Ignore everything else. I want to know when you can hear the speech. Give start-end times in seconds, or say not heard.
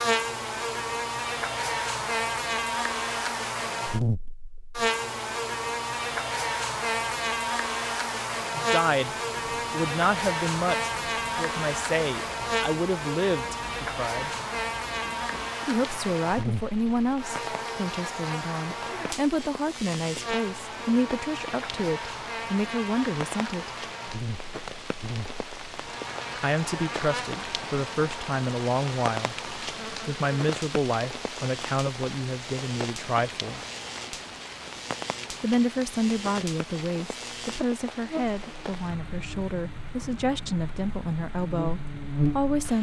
8.6-14.3, 15.7-23.7, 26.4-33.6, 35.4-42.7.